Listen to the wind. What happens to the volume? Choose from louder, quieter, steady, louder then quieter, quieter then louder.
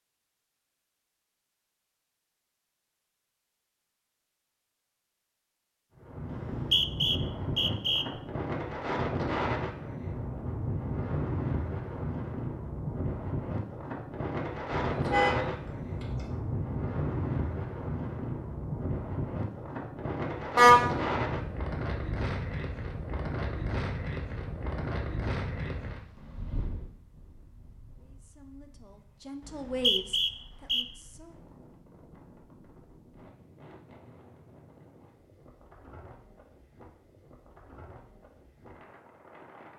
quieter.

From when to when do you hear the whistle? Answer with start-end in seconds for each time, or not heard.
6.3-8.1, 29.4-30.9.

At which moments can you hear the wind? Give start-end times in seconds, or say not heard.
6.0-39.7.